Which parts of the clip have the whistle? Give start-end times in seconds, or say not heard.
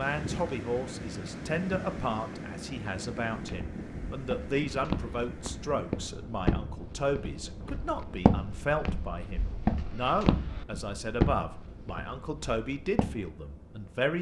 not heard.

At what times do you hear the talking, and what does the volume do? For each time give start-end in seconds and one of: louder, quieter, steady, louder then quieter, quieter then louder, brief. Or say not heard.
0.0-14.1 steady.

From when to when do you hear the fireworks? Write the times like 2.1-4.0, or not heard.
not heard.